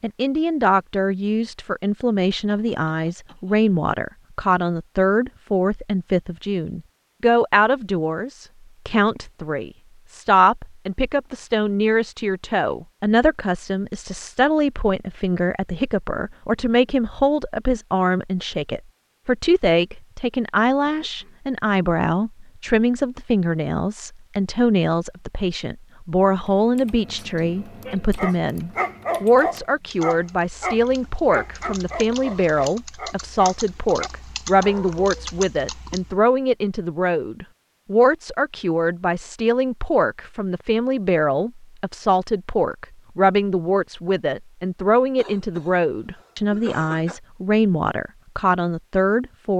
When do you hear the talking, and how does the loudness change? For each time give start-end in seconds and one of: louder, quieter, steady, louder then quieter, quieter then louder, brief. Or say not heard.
0.0-49.5 steady.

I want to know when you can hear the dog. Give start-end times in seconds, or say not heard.
27.8-35.0.